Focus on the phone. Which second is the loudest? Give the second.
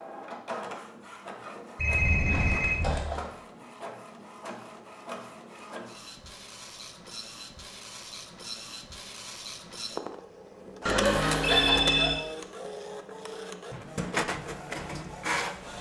12 s.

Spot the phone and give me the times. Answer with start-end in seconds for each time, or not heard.
1.8-3.3, 10.8-12.2.